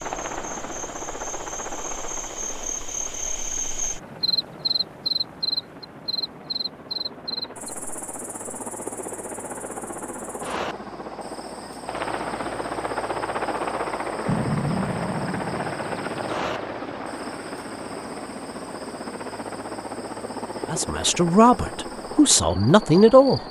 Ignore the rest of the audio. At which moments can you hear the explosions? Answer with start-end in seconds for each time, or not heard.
14.2-16.6.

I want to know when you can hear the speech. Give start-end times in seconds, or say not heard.
20.7-23.4.